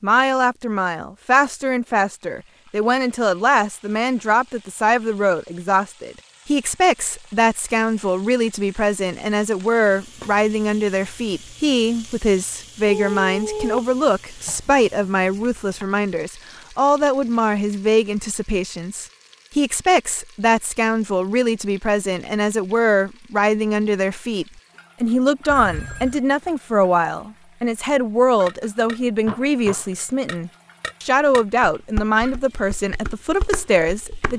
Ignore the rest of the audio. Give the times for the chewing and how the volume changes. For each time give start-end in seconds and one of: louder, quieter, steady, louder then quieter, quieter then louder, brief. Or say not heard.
not heard.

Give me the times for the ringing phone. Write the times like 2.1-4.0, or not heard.
12.8-14.6, 25.4-26.2.